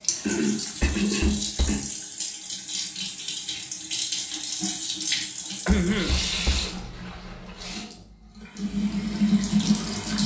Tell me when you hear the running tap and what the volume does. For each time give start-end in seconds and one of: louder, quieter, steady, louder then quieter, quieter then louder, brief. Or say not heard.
0.0-10.2 louder.